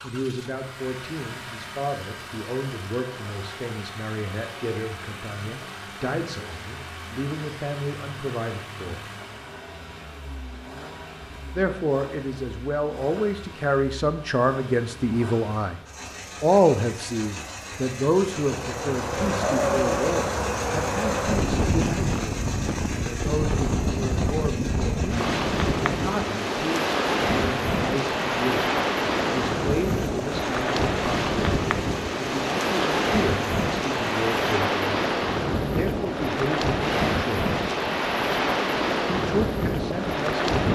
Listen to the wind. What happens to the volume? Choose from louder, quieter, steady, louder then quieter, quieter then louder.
steady.